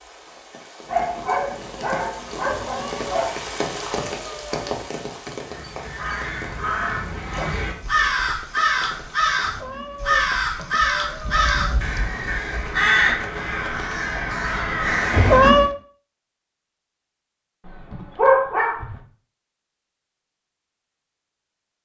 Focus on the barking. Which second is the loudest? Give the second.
18 s.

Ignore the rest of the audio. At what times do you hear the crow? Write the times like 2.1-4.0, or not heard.
5.5-15.5.